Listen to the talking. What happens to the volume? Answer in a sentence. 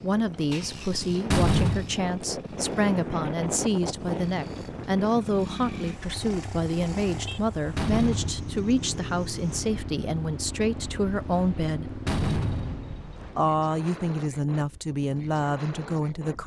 The loudness of the talking stays about the same.